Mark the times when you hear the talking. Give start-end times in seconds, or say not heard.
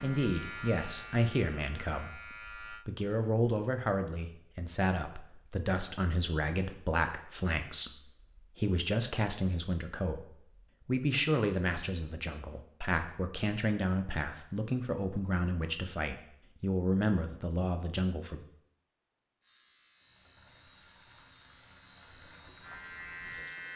0.0-18.4.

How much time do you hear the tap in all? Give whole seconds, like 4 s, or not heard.
4 s.